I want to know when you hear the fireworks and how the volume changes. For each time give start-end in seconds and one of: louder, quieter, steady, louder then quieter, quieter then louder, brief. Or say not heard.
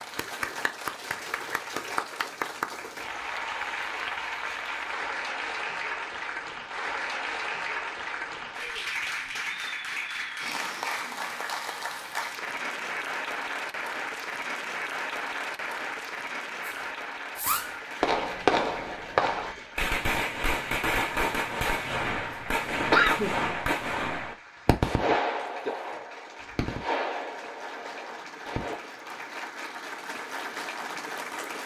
16.6-28.8 quieter.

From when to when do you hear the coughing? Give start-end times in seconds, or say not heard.
22.8-23.8.